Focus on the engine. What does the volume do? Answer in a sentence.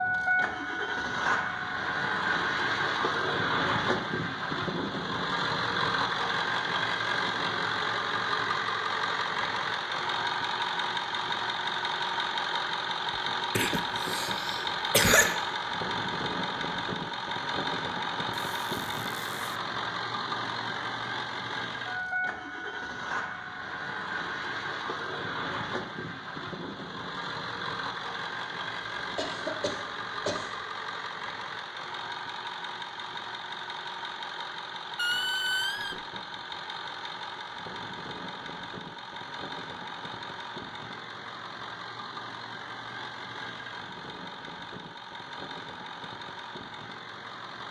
The loudness of the engine goes down.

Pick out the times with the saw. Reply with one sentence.
The saw can't be heard in this clip.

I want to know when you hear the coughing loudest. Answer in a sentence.
The loudest moment of the coughing is at 15 seconds.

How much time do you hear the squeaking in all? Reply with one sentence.
You can hear the squeaking for 2 seconds altogether.